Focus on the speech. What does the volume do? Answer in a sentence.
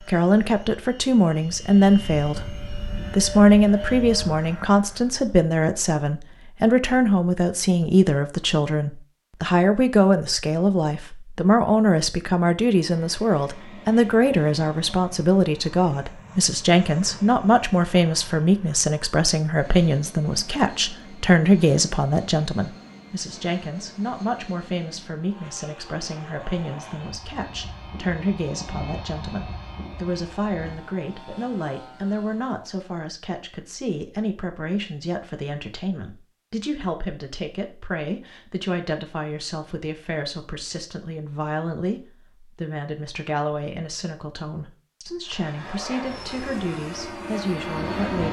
The loudness of the speech goes down.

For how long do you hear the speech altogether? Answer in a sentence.
You can hear the speech for 48 seconds altogether.